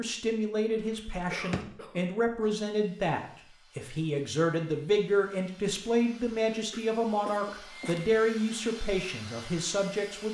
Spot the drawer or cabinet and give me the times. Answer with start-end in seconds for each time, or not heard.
1.2-1.7.